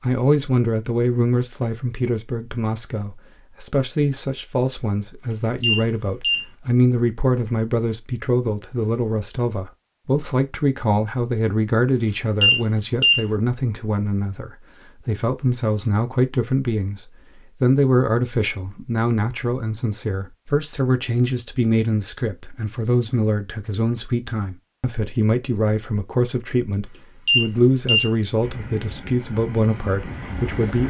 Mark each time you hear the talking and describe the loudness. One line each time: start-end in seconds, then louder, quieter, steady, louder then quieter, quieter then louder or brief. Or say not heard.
0.0-30.8 steady.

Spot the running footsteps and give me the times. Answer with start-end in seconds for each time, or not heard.
not heard.